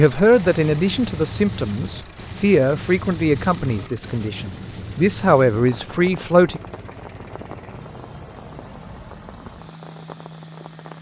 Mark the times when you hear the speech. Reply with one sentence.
The speech can be heard from 0.0 to 6.6 s.